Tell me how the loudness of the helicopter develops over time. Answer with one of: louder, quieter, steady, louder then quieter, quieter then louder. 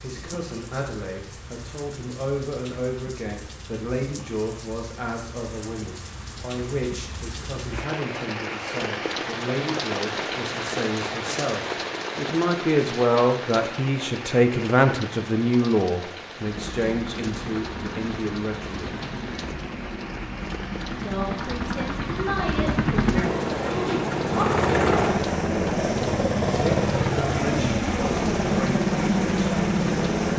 louder.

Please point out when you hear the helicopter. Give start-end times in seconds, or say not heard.
16.4-30.3.